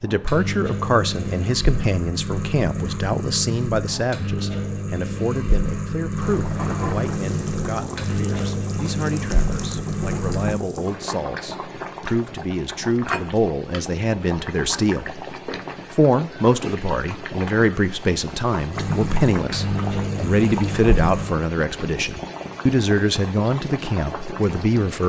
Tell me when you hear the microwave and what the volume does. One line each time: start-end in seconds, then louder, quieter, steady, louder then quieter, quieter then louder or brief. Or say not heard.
0.1-10.6 steady
18.7-21.3 brief.